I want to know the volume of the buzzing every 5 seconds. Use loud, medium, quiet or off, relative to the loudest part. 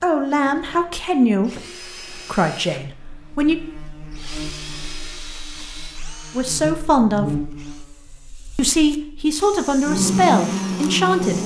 quiet, medium, loud.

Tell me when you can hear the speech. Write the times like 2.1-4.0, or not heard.
0.0-3.5, 6.3-7.4, 8.6-11.4.